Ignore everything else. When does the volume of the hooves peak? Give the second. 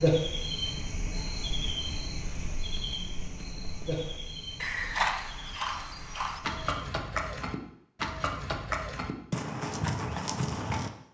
5 s.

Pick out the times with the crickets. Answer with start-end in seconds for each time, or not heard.
0.0-6.8.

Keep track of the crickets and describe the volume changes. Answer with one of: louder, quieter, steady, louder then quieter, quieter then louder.
quieter.